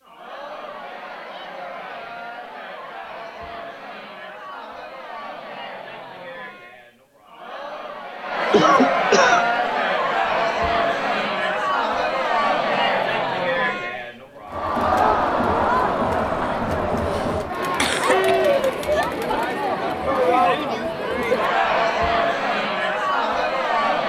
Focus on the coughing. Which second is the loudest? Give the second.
9 s.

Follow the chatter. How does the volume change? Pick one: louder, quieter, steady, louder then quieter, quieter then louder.
louder.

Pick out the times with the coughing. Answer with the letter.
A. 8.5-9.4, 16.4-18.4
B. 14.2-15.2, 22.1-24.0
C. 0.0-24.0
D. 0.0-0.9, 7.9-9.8
A.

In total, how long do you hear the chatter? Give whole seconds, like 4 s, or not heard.
24 s.